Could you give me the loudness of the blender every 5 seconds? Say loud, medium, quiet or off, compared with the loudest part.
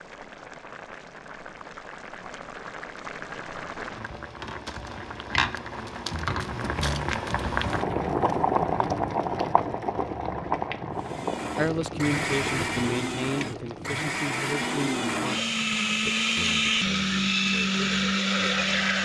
off, off, medium, loud.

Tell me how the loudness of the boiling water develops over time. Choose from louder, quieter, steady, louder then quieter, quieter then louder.
louder then quieter.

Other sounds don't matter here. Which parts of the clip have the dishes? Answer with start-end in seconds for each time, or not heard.
not heard.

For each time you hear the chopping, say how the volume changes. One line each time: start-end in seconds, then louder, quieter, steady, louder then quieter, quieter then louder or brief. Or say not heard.
not heard.